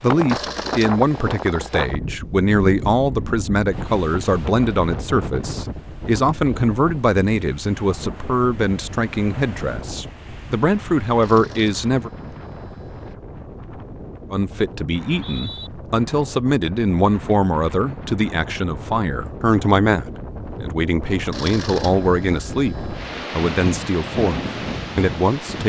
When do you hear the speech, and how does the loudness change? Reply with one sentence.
You can hear the speech from 0.0 to 12.1 s, at a steady volume; and from 14.3 to 25.6 s, at a steady volume.